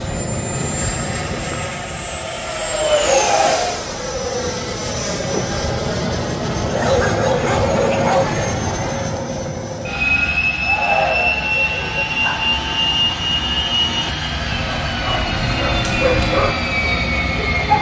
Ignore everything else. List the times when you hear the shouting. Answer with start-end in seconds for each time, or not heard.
3.0-4.0, 10.6-11.6.